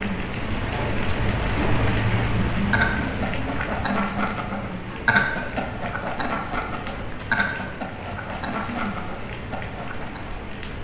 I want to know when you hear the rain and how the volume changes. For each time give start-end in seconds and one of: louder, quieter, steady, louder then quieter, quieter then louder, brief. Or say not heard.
0.0-10.7 quieter.